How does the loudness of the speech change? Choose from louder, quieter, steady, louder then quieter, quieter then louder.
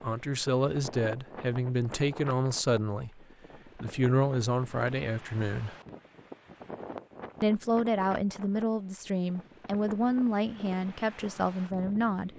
steady.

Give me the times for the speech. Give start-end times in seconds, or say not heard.
0.0-5.8, 7.4-12.3.